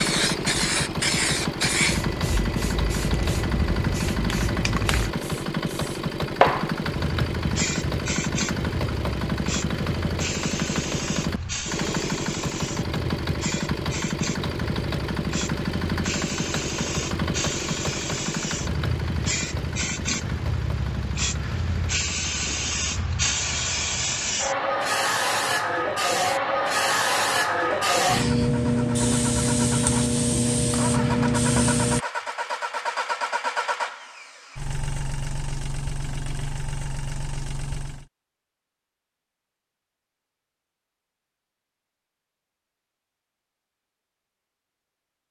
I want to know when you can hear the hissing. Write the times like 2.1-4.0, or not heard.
0.0-32.0.